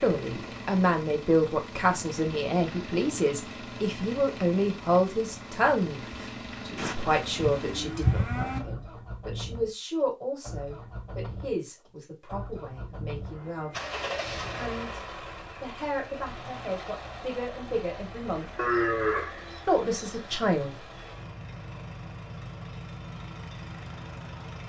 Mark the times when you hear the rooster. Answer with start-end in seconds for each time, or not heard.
not heard.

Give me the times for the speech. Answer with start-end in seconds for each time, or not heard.
0.0-13.8, 14.5-18.4, 19.6-20.8.